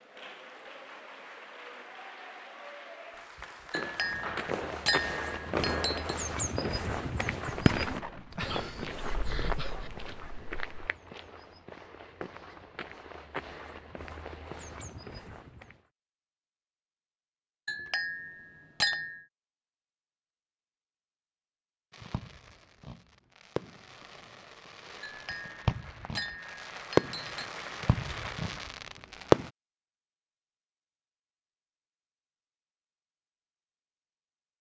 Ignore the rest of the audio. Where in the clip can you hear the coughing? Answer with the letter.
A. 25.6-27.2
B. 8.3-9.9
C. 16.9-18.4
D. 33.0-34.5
B.